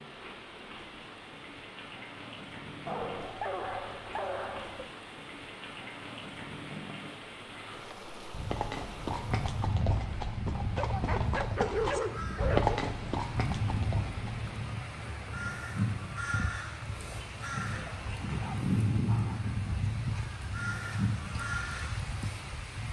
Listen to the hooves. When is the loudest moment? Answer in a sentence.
The loudest moment of the hooves is at 13 seconds.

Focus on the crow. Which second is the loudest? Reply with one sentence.
The volume of the crow peaks at 19 seconds.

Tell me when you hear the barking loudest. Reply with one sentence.
The loudest moment of the barking is at 12 seconds.